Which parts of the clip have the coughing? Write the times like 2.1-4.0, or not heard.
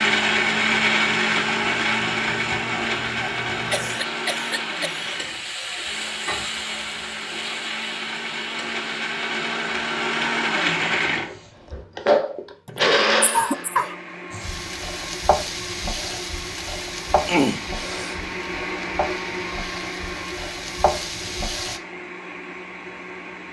3.7-5.2, 12.7-13.9, 17.2-18.1.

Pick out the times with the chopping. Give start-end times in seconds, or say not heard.
not heard.